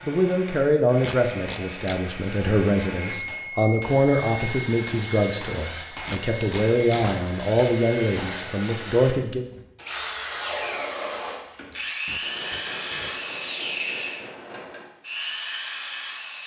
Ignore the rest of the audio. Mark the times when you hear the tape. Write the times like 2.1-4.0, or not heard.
1.0-2.0, 6.0-7.2, 12.1-13.2.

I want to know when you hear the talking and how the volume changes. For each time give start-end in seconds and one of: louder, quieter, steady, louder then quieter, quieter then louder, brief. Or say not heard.
0.0-9.4 steady.